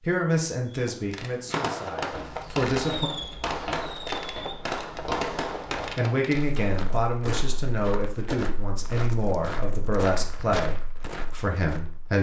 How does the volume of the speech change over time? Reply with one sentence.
The loudness of the speech stays about the same.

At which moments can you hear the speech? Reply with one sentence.
You can hear the speech from 0.0 to 3.1 s and from 6.0 to 12.1 s.